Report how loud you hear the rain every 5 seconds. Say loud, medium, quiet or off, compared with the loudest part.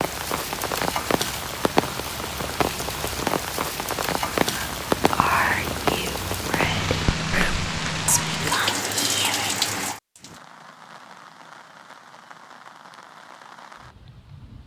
loud, loud, quiet.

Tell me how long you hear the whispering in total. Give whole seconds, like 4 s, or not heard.
5 s.